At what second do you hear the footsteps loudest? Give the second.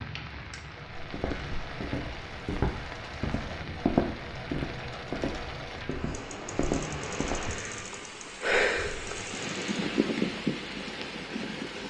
4 s.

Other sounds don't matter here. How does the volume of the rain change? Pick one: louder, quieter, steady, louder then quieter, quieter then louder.
louder.